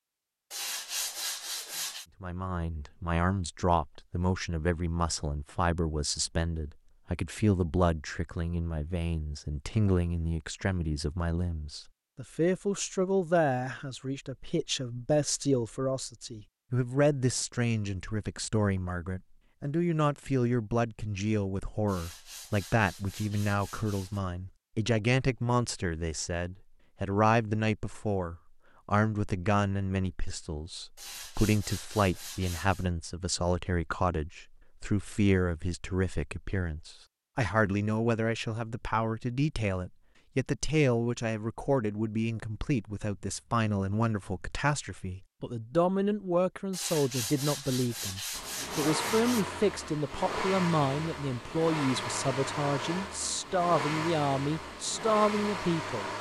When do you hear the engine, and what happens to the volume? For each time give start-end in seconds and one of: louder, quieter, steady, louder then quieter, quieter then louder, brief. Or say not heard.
48.3-56.1 steady.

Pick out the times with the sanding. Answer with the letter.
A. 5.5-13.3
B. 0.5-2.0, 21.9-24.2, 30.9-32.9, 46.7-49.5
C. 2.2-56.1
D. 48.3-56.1
B.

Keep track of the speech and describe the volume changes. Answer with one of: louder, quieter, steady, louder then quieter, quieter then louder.
steady.